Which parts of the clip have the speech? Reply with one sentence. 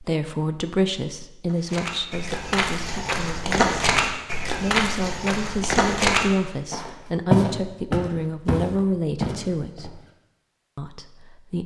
You can hear the speech from 0.0 to 10.0 s and from 10.8 to 11.6 s.